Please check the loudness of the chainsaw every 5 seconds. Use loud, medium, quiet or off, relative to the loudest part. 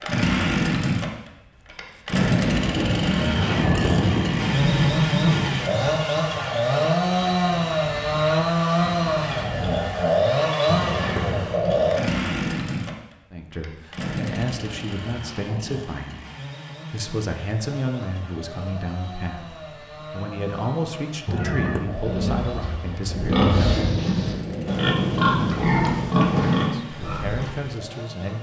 loud, loud, loud, quiet, quiet, quiet.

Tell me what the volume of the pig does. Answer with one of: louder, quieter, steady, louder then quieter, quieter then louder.
louder.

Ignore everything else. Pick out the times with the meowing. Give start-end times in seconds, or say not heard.
3.4-4.3, 10.7-11.6, 21.2-21.9.